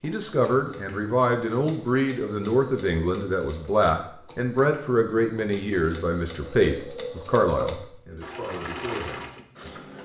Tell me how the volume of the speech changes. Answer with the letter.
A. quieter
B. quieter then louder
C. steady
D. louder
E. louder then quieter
A.